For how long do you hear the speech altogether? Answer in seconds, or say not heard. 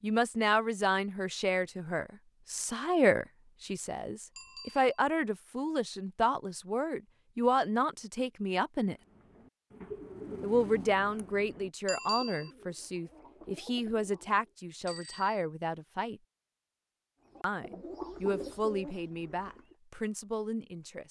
18 s.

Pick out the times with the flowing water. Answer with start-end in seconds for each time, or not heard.
not heard.